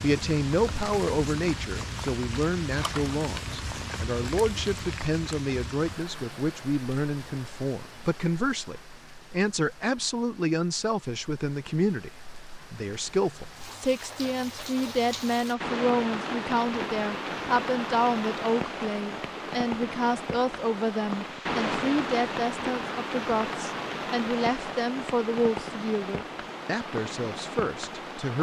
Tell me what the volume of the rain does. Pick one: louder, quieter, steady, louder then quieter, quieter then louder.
quieter then louder.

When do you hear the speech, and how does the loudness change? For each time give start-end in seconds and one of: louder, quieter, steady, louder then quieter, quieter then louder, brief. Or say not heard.
0.0-28.3 steady.